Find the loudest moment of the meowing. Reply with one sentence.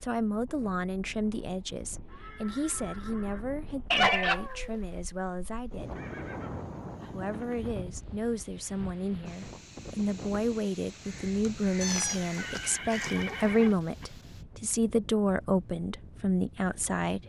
The loudest moment of the meowing is at 4 seconds.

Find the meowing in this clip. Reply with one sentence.
The meowing can be heard from 3.9 to 4.7 s and from 11.8 to 13.4 s.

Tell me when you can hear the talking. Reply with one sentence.
The talking can be heard from 0.0 to 6.0 s and from 7.1 to 17.2 s.